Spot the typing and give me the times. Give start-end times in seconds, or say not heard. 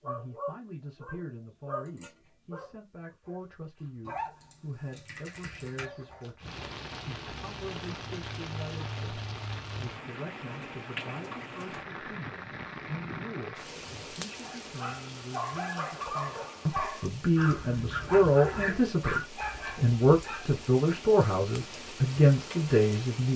4.0-5.9.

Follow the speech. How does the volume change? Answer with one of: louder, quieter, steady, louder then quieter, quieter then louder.
louder.